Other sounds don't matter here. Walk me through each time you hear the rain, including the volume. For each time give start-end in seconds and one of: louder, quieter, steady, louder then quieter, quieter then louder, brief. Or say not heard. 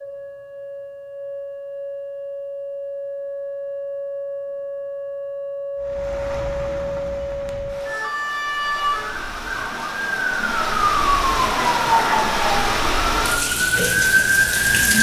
5.8-14.9 louder.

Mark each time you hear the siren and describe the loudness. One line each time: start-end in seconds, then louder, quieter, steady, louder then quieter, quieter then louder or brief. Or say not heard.
0.0-14.9 louder.